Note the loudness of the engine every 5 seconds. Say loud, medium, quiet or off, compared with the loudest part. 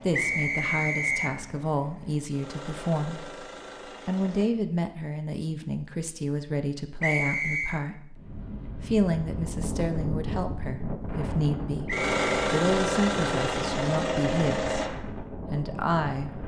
quiet, off, loud, off.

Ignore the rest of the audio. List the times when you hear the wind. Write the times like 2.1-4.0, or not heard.
8.1-16.4.